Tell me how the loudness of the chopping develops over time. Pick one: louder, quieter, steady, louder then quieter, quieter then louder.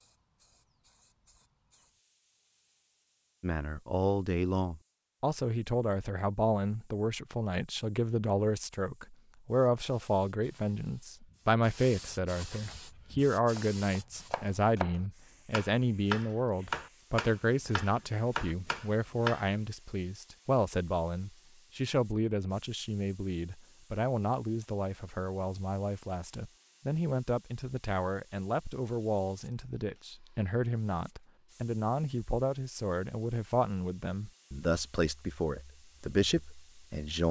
louder.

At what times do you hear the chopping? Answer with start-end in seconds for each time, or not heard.
12.7-19.5.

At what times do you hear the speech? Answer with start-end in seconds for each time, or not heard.
3.4-37.2.